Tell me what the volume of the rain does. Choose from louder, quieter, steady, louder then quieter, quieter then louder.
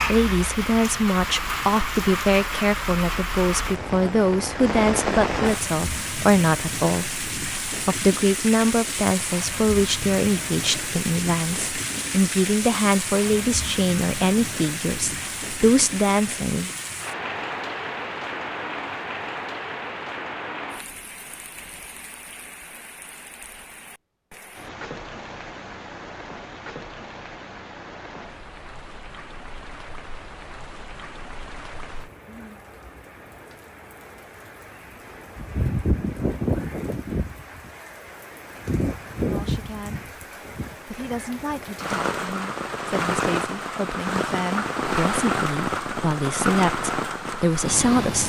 quieter then louder.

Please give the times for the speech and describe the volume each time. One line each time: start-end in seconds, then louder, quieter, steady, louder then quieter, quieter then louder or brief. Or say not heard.
0.1-16.7 steady
39.1-40.1 brief
40.9-48.2 louder.